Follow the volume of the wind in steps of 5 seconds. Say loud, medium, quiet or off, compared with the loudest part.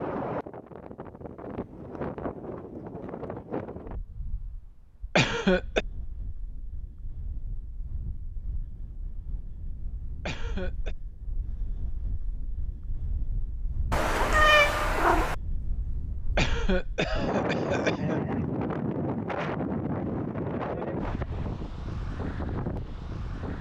medium, quiet, quiet, loud, loud.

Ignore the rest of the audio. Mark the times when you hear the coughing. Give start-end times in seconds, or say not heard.
5.2-5.8, 10.2-10.9, 16.4-18.2.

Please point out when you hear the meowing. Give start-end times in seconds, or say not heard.
13.9-15.3.